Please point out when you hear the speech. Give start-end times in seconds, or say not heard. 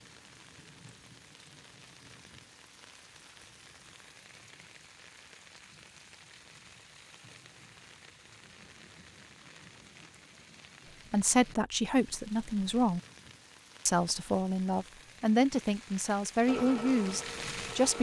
11.1-13.0, 13.8-17.9.